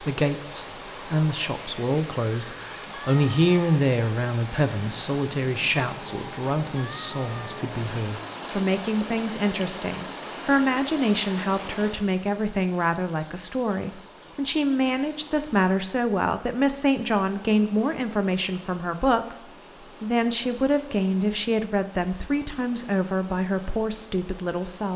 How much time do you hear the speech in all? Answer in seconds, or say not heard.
25 s.